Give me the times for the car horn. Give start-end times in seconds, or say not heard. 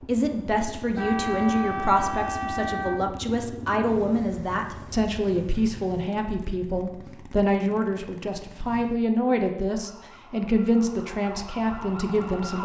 0.9-3.0.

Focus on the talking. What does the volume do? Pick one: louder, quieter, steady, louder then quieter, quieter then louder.
steady.